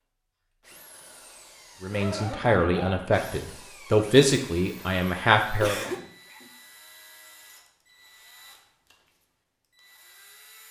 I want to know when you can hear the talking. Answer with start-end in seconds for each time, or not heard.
1.8-5.8.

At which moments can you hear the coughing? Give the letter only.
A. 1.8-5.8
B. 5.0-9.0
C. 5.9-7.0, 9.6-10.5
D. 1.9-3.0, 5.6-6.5
D.